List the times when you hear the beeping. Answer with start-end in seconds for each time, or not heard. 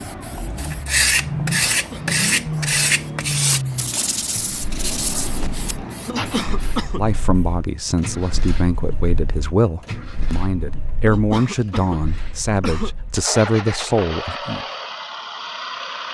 not heard.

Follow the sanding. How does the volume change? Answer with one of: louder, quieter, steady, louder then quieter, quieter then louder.
quieter.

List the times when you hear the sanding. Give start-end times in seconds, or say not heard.
0.6-6.5.